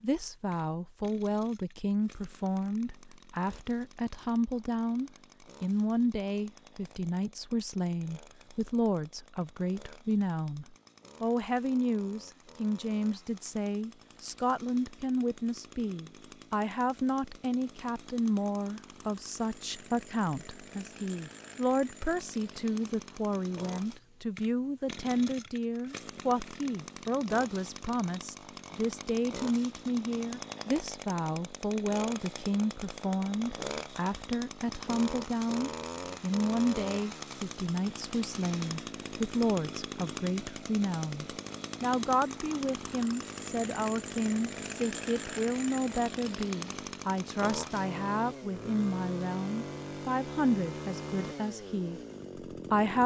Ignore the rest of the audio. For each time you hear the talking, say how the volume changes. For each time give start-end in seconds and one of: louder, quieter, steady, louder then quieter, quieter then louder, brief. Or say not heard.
0.0-53.0 steady.